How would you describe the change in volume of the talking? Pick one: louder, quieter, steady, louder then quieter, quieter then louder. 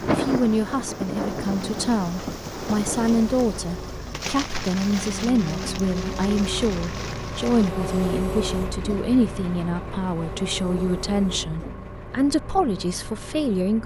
steady.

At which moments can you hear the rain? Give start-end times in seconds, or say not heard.
0.0-7.7.